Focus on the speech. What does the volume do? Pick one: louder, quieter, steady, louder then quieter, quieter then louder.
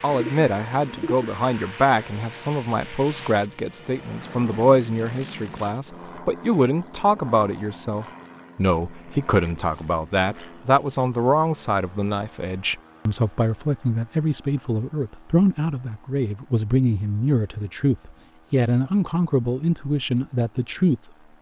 steady.